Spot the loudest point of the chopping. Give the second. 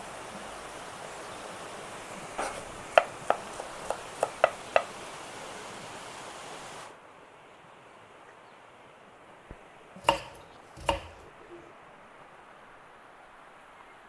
3 s.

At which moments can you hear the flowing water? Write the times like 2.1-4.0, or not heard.
0.0-14.0.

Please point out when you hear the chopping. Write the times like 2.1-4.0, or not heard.
2.4-4.8, 9.9-11.6.